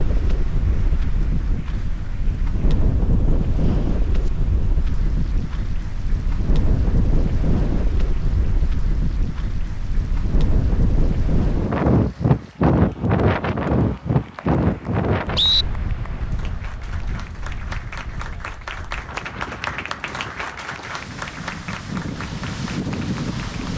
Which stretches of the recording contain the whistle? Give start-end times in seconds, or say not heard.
13.7-15.7.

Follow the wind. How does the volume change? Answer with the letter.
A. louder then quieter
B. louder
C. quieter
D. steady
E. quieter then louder
A.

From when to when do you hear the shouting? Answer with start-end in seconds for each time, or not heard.
not heard.